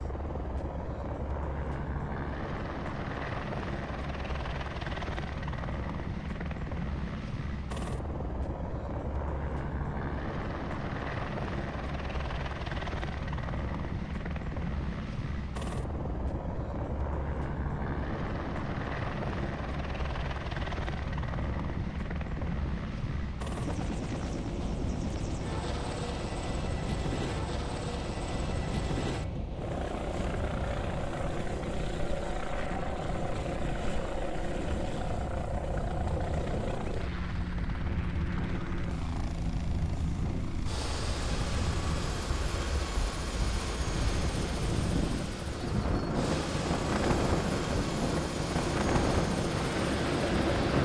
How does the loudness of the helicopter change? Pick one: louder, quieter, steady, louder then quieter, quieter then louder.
steady.